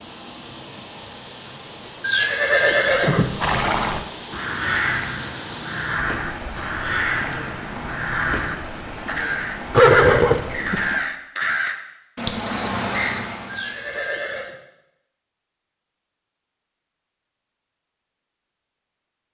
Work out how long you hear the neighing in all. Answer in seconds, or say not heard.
4 s.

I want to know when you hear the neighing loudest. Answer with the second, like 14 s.
10 s.